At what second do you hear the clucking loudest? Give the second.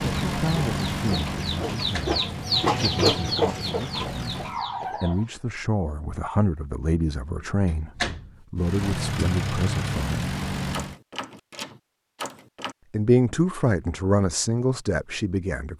3 s.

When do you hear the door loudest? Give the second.
8 s.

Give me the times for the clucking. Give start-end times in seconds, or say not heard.
0.0-5.3.